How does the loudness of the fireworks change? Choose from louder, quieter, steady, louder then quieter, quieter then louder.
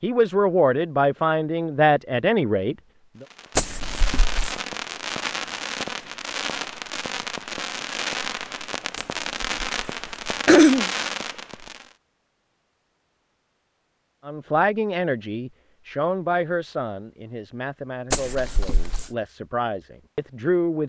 steady.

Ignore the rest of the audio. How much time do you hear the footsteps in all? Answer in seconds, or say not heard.
not heard.